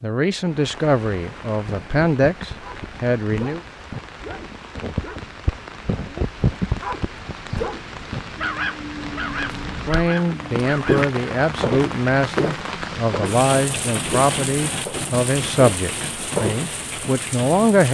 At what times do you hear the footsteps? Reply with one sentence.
You can hear the footsteps from 9.5 to 10.1 s and from 10.7 to 16.7 s.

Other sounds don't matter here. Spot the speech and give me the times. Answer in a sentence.
You can hear the speech from 0.0 to 3.6 s and from 9.8 to 17.8 s.